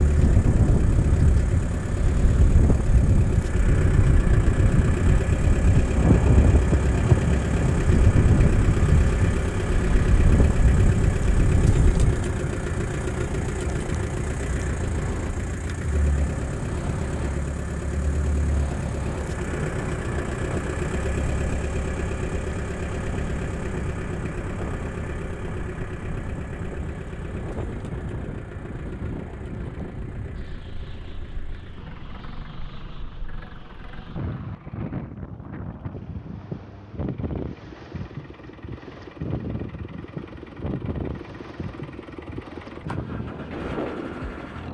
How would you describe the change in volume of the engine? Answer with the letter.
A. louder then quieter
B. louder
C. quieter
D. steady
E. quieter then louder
C.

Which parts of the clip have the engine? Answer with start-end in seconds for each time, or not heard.
0.0-44.6.